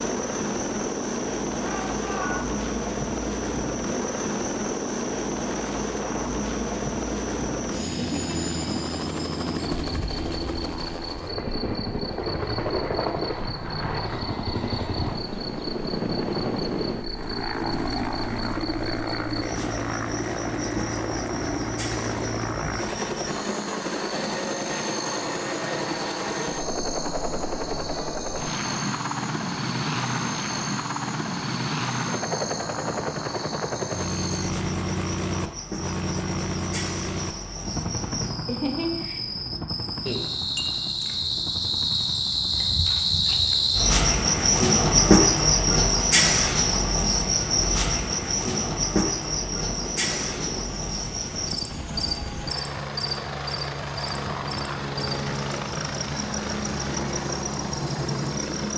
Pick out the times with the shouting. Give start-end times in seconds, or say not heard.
1.6-2.5.